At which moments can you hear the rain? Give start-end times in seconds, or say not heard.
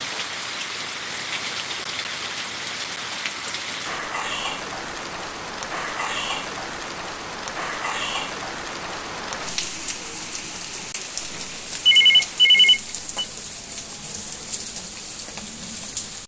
0.0-16.2.